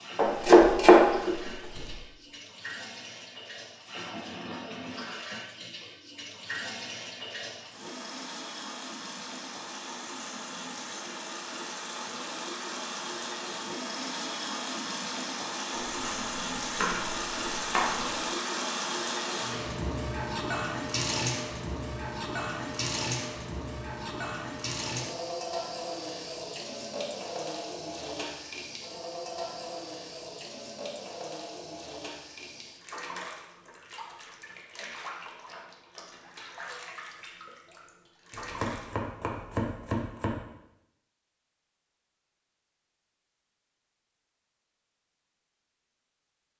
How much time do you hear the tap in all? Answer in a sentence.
The tap can be heard for 39 seconds in total.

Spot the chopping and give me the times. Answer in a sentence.
You can hear the chopping from 0.1 to 1.9 s, from 15.8 to 18.1 s and from 38.3 to 40.4 s.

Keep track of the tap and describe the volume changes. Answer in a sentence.
The loudness of the tap goes up, then down.